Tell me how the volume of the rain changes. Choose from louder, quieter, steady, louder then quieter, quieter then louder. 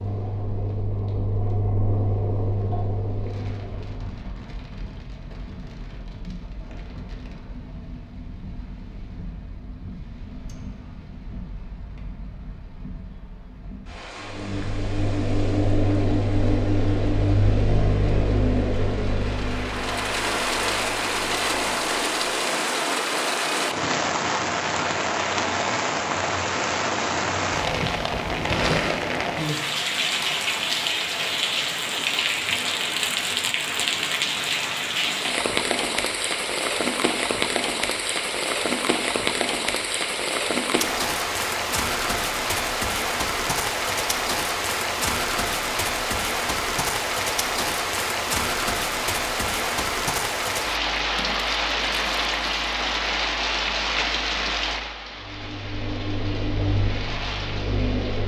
louder.